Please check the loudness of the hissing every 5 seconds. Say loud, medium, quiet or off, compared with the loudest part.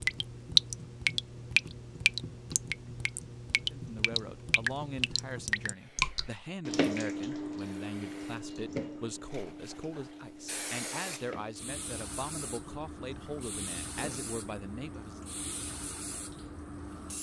off, medium, loud, loud.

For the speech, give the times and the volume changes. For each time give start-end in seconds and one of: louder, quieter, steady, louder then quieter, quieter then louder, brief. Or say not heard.
3.7-15.3 steady.